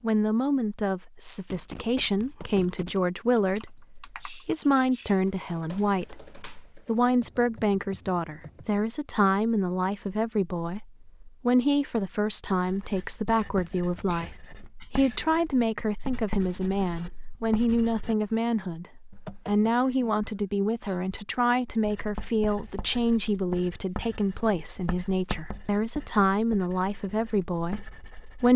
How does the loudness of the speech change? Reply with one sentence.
The loudness of the speech stays about the same.